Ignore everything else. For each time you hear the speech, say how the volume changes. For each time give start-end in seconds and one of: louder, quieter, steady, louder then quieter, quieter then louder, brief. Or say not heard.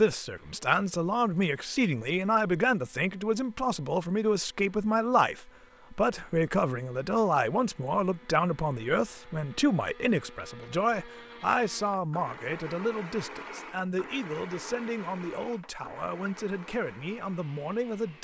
0.0-18.1 quieter.